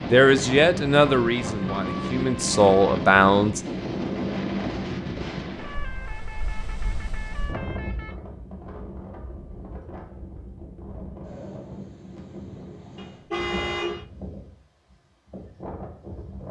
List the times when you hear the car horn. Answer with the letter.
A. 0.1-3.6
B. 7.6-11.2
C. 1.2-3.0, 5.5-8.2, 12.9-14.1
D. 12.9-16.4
C.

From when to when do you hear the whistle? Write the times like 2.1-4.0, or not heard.
not heard.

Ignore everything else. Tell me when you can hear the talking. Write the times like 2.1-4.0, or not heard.
0.1-3.6.